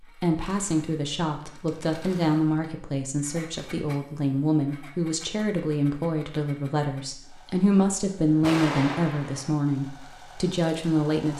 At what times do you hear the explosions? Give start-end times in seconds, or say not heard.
8.4-9.5.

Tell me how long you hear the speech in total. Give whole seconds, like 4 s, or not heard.
11 s.